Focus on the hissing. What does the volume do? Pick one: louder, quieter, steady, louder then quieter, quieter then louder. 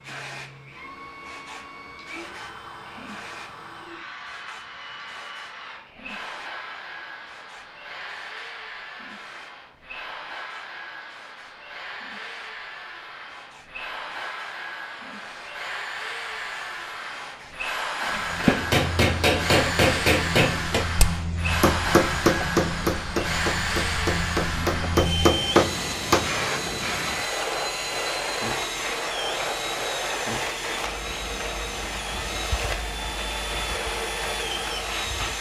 quieter then louder.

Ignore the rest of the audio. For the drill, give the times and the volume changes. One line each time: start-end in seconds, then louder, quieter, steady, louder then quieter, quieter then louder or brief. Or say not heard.
0.0-35.3 louder.